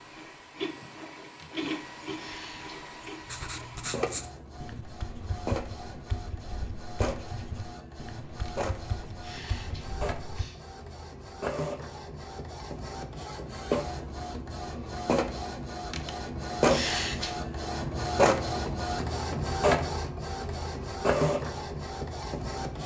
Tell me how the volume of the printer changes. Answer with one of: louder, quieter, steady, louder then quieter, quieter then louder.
louder.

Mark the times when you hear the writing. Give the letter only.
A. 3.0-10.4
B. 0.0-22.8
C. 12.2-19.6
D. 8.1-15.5
A.